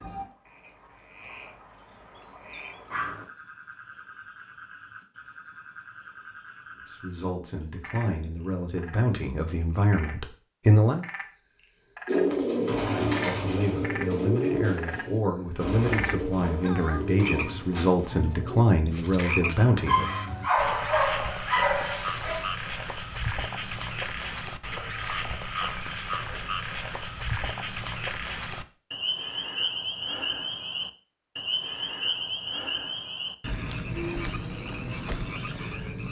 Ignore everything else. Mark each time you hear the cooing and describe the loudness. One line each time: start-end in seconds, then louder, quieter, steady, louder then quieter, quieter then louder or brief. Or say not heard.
12.1-18.6 quieter.